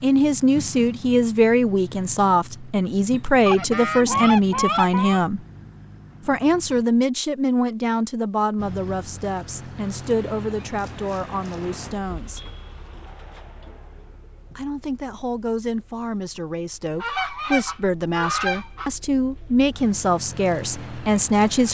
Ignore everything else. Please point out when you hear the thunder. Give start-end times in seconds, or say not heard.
not heard.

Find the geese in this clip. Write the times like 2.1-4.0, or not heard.
3.5-5.2, 17.0-18.9.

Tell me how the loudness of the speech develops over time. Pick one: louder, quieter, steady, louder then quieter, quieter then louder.
quieter then louder.